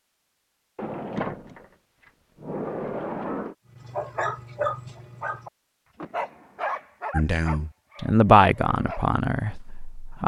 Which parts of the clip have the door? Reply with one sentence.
The door can be heard from 0.8 to 3.5 s and from 6.0 to 6.8 s.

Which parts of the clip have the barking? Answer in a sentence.
You can hear the barking from 3.8 to 5.5 s and from 6.1 to 9.1 s.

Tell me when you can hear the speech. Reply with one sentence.
You can hear the speech from 7.1 to 10.2 s.